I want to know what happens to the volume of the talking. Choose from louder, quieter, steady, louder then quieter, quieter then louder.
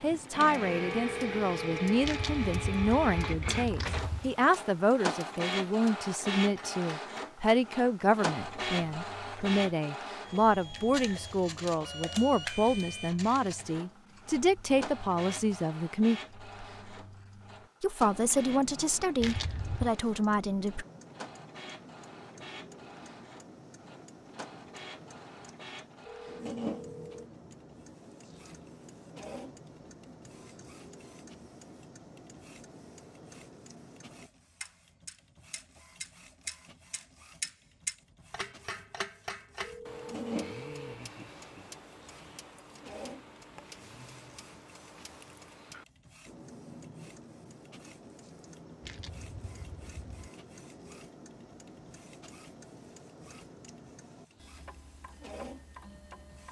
steady.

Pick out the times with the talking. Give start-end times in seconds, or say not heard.
0.0-16.2, 17.8-20.9.